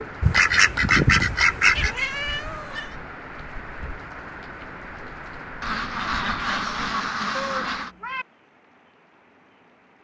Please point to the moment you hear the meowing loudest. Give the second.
2 s.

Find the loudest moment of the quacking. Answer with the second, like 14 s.
1 s.